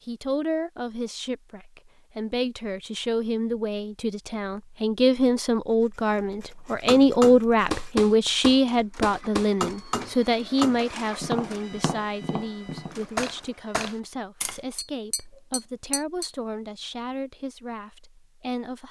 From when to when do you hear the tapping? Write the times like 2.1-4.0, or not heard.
6.8-16.3.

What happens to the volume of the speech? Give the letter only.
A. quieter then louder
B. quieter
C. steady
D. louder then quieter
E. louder
D.